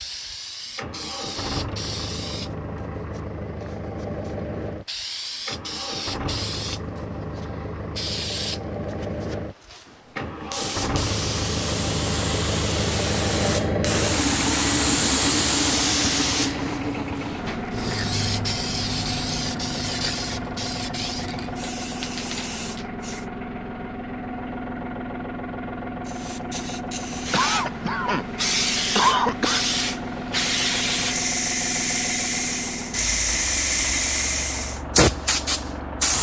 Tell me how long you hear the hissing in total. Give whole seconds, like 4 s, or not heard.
33 s.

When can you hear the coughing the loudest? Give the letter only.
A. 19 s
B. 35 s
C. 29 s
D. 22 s
C.